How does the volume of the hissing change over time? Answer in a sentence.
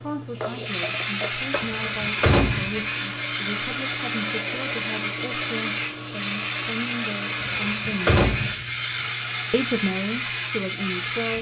The loudness of the hissing stays about the same.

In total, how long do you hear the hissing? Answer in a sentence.
You can hear the hissing for 11 seconds altogether.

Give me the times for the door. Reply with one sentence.
The door can be heard from 1.6 to 2.8 s and from 7.4 to 8.6 s.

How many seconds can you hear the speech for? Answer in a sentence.
The speech can be heard for 10 seconds in total.